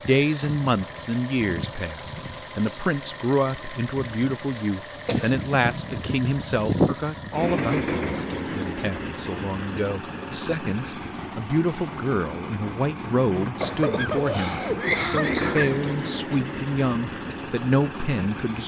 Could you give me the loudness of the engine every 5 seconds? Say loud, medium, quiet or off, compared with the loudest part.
medium, loud, medium, loud.